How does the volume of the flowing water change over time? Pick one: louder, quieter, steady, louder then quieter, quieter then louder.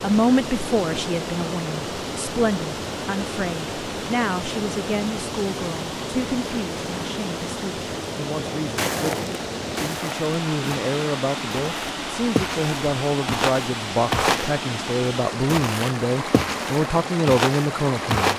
steady.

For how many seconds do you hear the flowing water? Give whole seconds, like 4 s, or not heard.
18 s.